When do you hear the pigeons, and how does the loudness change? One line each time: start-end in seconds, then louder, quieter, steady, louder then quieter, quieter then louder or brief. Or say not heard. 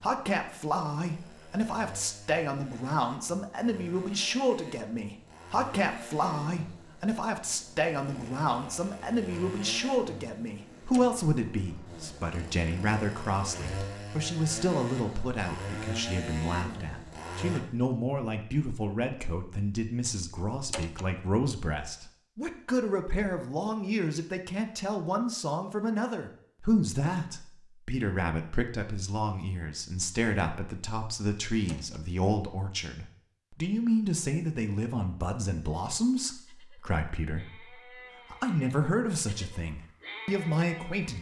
not heard.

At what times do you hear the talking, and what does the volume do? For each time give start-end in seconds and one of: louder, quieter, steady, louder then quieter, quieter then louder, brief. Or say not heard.
0.0-41.1 steady.